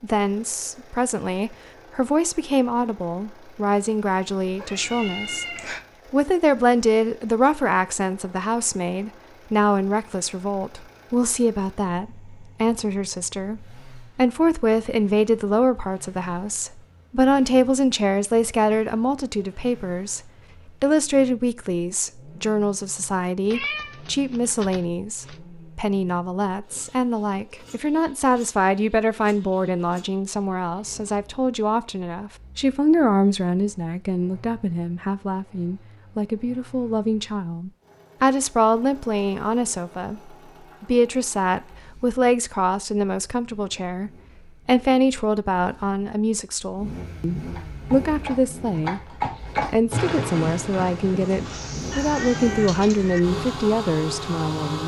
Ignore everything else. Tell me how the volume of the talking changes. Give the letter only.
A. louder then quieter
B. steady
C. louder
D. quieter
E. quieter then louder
B.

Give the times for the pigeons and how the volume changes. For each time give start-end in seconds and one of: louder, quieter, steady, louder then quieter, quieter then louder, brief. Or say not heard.
not heard.